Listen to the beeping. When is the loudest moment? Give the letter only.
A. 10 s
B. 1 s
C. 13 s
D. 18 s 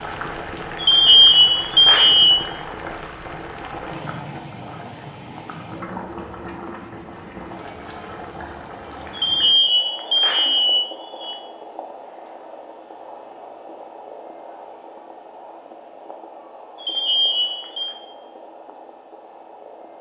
B.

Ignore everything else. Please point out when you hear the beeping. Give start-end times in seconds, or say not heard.
0.8-2.4, 9.2-11.3, 16.8-17.9.